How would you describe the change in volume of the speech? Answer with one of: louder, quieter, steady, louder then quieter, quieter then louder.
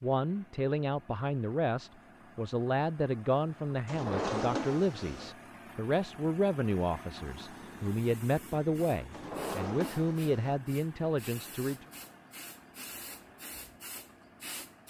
steady.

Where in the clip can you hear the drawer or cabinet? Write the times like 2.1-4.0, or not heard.
3.9-5.3, 9.1-10.6.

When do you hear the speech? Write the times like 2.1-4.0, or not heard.
0.0-11.8.